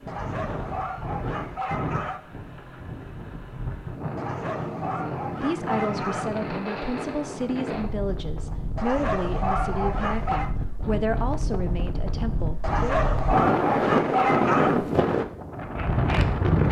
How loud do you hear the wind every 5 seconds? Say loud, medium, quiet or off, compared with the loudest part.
medium, medium, loud, loud.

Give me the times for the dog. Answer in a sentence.
The dog can be heard from 0.1 to 2.2 s, from 4.2 to 6.3 s, from 8.8 to 10.5 s and from 12.6 to 14.8 s.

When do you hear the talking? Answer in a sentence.
The talking can be heard from 5.4 to 12.9 s.